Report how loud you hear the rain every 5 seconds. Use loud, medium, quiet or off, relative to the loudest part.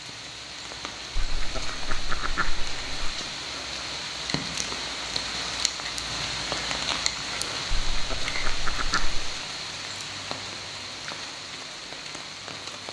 loud, loud, medium.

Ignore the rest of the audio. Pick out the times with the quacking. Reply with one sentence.
The quacking can be heard from 1.1 to 3.1 s and from 7.7 to 9.3 s.